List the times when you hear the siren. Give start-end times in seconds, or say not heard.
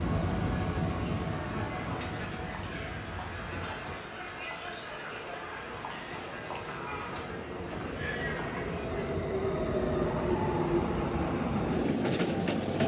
not heard.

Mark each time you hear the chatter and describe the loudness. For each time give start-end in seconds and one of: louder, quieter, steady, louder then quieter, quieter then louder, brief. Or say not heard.
0.0-9.2 steady.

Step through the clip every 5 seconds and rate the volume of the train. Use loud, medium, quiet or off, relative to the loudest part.
medium, medium, loud.